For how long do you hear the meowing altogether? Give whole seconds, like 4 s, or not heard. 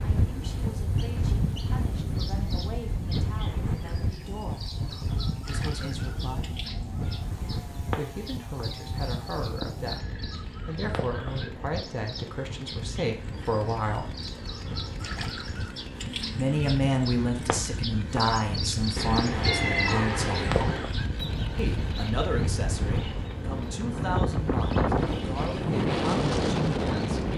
2 s.